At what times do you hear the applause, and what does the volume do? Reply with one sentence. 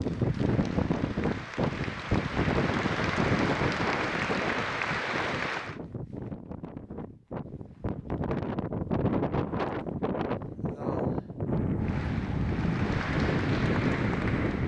You can hear the applause from 0.0 to 5.8 s, getting louder; and briefly from 11.8 to 14.6 s.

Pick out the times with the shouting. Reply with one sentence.
The shouting can't be heard in this clip.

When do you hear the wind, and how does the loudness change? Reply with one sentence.
The wind can be heard from 0.0 to 14.6 s, getting quieter then louder.